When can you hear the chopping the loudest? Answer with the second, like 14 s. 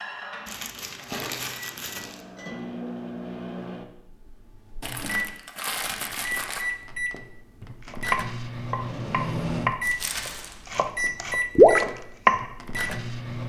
12 s.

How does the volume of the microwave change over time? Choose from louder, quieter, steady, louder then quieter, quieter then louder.
louder.